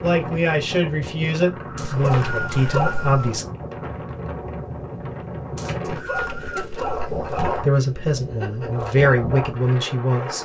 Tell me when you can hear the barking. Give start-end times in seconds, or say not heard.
1.8-3.4, 5.9-7.7.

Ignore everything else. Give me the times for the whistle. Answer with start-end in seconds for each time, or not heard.
1.8-3.2, 5.5-6.7.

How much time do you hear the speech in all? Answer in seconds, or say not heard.
6 s.